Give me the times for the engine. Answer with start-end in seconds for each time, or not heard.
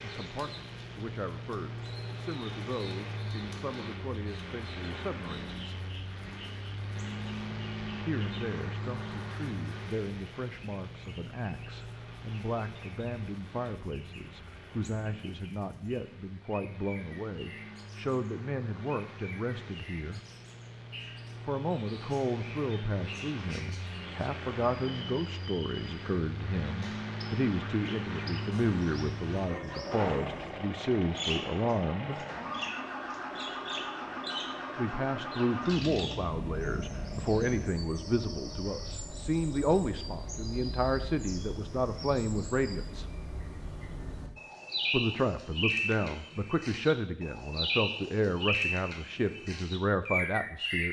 0.0-37.8.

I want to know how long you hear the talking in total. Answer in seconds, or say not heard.
43 s.